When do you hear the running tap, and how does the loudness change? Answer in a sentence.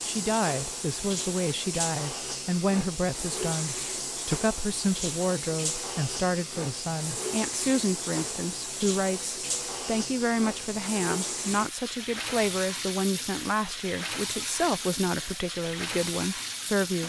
The running tap can be heard from 0.0 to 17.0 s, at a steady volume.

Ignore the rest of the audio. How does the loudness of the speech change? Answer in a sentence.
The volume of the speech stays about the same.